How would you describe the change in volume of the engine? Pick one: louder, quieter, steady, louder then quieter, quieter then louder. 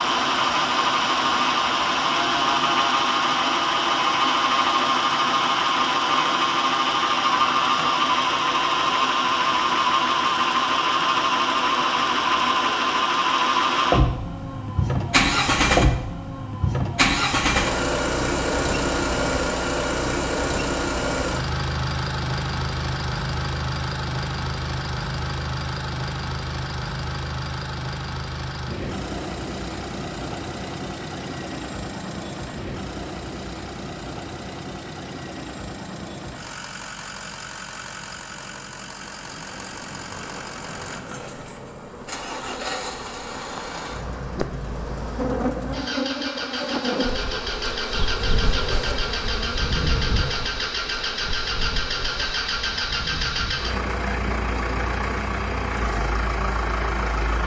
quieter then louder.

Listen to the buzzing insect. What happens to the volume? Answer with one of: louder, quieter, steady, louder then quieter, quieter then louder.
louder then quieter.